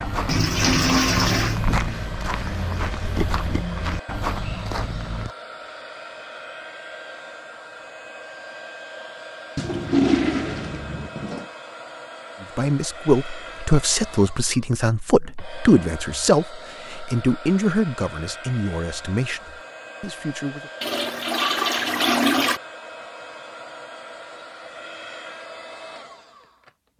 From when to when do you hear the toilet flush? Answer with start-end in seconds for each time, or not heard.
0.2-1.6, 9.6-11.4, 20.8-22.6.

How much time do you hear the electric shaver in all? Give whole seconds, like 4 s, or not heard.
not heard.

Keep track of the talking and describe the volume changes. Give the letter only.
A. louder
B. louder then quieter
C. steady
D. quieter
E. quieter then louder
D.